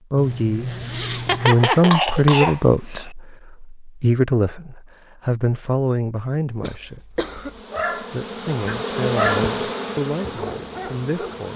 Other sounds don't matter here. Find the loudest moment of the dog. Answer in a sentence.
The loudest moment of the dog is at 9 seconds.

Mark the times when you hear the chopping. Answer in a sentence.
You can't hear the chopping here.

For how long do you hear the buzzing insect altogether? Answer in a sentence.
The buzzing insect can be heard for 4 seconds in total.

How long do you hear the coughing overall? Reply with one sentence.
The coughing can be heard for 3 seconds in total.